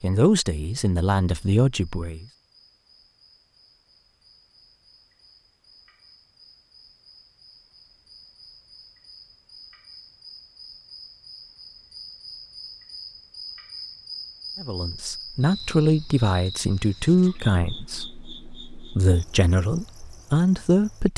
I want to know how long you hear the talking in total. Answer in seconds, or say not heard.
9 s.